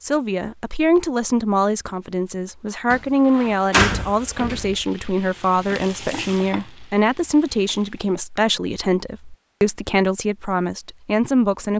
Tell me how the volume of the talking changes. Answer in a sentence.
The volume of the talking stays about the same.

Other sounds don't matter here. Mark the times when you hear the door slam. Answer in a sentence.
The door slam can be heard from 2.9 to 4.8 s.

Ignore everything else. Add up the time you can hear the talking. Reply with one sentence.
The talking can be heard for 12 seconds in total.